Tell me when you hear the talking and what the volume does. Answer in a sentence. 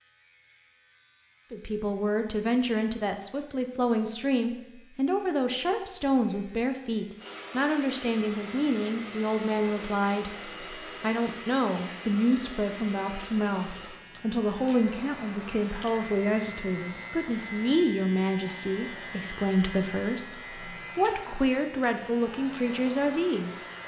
The talking can be heard from 1.5 to 23.6 s, at a steady volume.